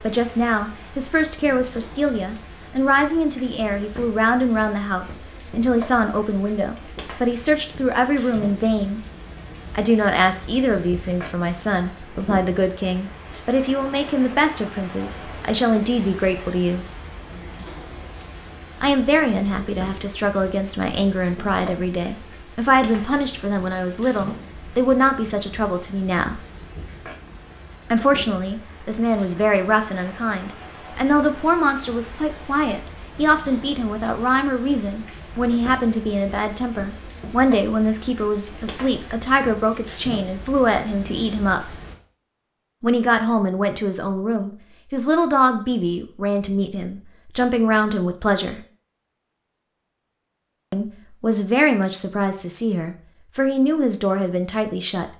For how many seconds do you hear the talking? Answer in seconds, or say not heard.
48 s.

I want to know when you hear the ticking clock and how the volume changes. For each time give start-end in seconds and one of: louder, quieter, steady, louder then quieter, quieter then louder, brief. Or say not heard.
not heard.